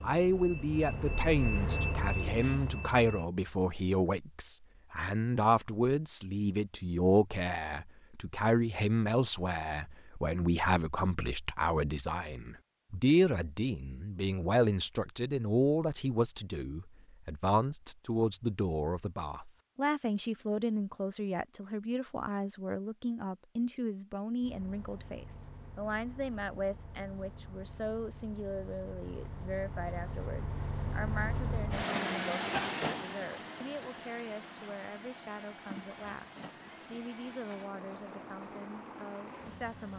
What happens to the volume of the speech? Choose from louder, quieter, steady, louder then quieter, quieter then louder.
quieter.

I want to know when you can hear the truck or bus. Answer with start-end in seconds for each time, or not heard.
0.0-3.3, 24.4-39.9.